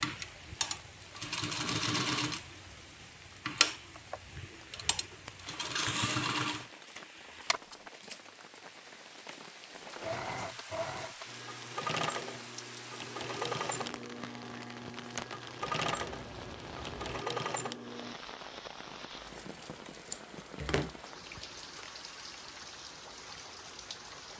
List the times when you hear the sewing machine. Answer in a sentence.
You can hear the sewing machine from 0.0 to 7.9 s and from 9.8 to 18.1 s.